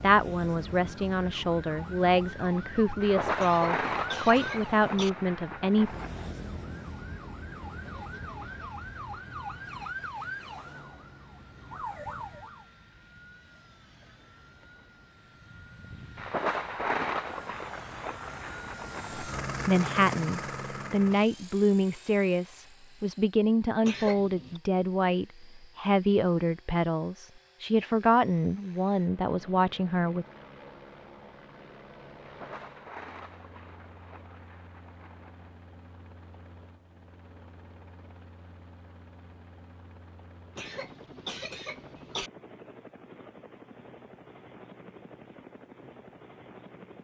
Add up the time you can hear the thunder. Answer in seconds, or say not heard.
10 s.